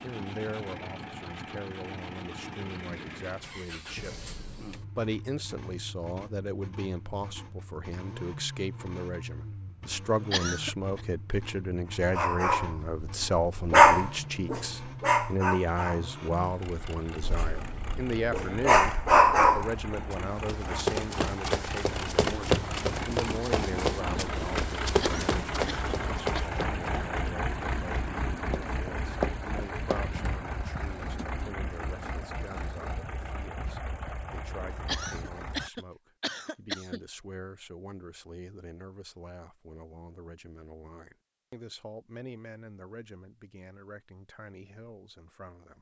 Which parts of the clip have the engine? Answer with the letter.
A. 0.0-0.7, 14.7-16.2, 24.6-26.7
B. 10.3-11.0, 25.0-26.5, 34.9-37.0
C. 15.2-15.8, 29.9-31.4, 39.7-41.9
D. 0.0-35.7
D.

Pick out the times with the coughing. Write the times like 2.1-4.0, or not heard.
10.3-11.0, 25.0-26.5, 34.9-37.0.